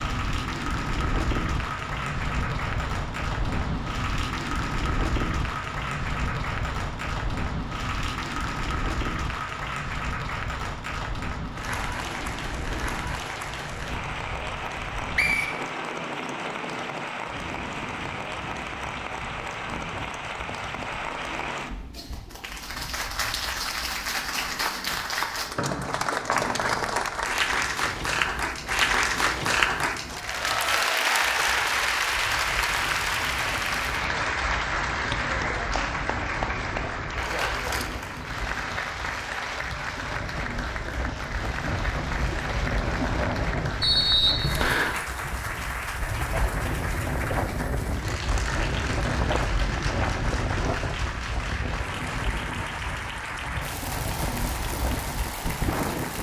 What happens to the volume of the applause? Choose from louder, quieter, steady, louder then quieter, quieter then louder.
louder then quieter.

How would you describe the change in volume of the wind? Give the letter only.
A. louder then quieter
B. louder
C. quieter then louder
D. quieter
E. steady
C.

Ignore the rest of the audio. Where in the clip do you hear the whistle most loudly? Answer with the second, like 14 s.
44 s.